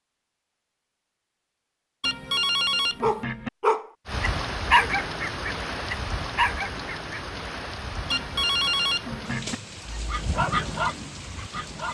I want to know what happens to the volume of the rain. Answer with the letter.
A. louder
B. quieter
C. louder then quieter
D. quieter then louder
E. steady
B.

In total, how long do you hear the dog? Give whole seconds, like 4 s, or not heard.
6 s.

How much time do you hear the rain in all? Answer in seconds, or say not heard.
8 s.